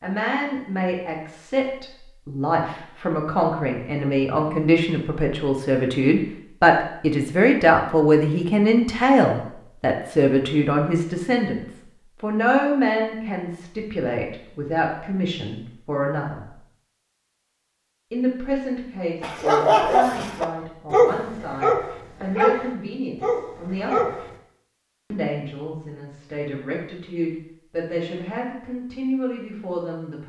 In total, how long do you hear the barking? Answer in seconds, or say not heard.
5 s.